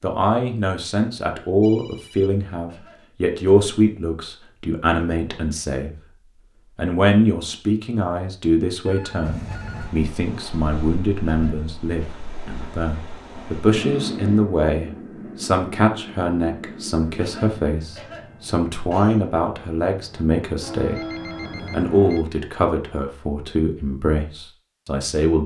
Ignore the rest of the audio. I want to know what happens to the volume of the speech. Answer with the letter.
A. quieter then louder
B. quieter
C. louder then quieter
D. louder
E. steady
E.